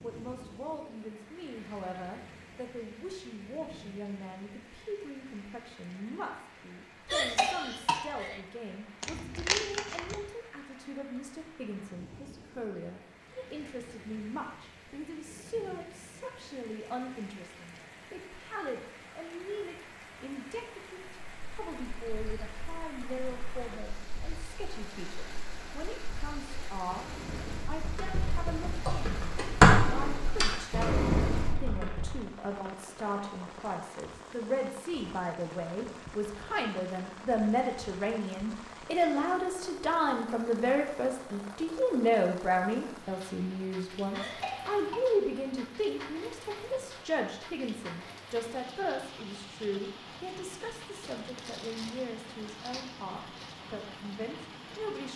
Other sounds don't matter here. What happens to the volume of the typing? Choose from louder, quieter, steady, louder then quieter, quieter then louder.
louder then quieter.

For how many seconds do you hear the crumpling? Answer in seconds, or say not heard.
4 s.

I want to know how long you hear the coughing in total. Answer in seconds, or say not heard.
2 s.